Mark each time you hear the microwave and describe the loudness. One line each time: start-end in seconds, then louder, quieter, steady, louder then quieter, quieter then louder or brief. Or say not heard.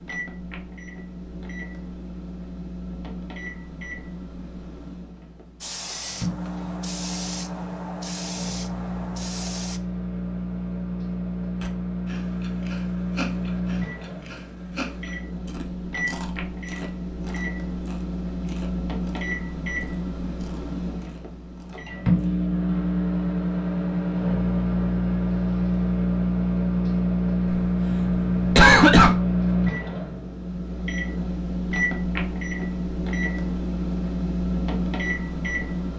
0.0-35.9 louder.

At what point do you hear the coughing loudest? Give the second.
29 s.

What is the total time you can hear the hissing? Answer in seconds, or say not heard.
4 s.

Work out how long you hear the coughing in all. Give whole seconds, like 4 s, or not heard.
2 s.